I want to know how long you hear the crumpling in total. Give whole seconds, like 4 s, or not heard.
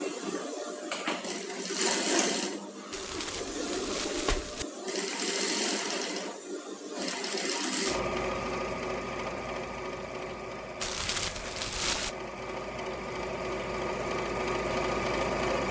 3 s.